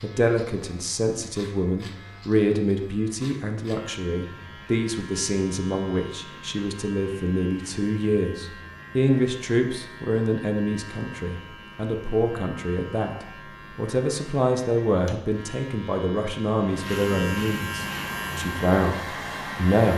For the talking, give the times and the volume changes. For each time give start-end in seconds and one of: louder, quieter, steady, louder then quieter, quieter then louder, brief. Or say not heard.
0.0-19.9 steady.